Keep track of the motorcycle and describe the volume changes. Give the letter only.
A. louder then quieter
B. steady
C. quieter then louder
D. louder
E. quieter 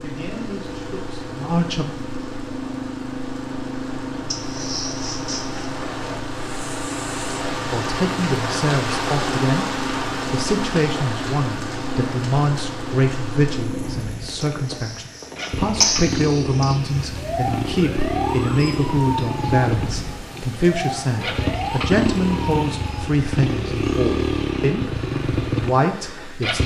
D.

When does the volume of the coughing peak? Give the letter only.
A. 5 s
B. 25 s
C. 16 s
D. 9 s
C.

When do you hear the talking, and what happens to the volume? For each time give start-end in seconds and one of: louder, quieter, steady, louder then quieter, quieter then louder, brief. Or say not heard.
0.0-1.9 brief
7.7-9.7 brief
10.3-26.6 steady.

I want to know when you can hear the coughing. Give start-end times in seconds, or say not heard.
4.3-5.7, 14.4-16.9.